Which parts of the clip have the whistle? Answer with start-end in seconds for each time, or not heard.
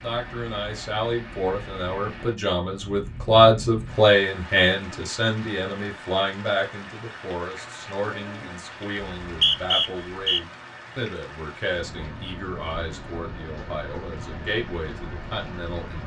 9.1-10.4.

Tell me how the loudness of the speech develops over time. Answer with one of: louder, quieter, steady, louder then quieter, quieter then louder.
quieter.